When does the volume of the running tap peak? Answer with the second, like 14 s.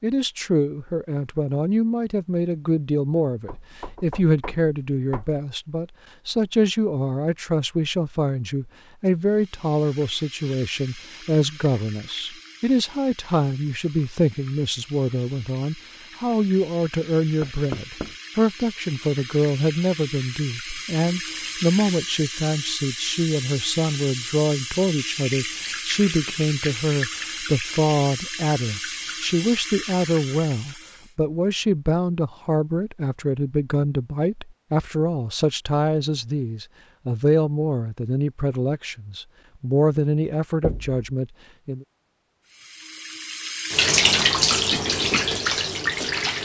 44 s.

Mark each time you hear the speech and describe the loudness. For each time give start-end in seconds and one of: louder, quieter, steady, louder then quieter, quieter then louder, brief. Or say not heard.
0.0-41.9 steady.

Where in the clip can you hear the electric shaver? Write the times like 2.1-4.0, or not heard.
not heard.